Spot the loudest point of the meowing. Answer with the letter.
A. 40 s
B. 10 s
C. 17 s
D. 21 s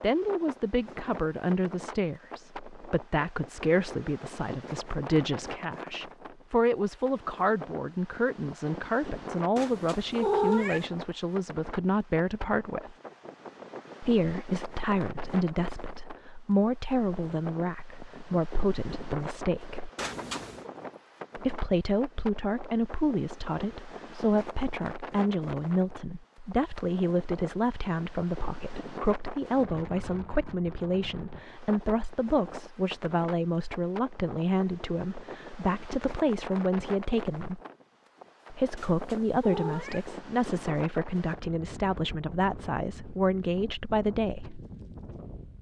B.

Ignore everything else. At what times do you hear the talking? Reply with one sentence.
You can hear the talking from 0.0 to 12.9 s, from 14.0 to 19.9 s, from 21.4 to 37.6 s and from 38.5 to 44.6 s.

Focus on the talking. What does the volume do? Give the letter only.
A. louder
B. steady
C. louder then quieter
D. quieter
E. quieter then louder
B.